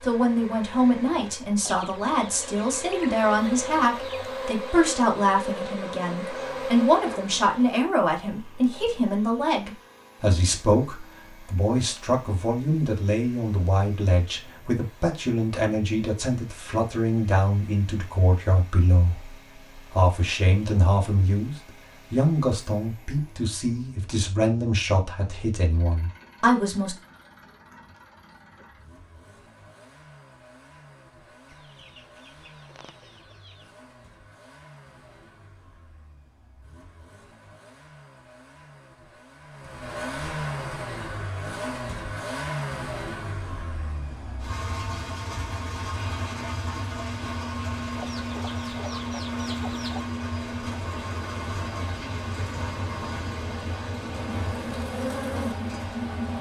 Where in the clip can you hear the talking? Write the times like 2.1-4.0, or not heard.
0.0-26.9.